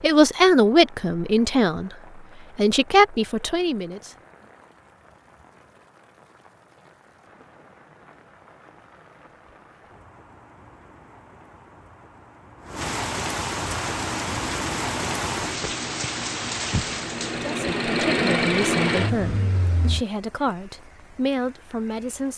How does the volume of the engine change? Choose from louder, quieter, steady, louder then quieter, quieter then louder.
louder.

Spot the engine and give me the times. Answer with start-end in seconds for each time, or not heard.
13.8-20.1.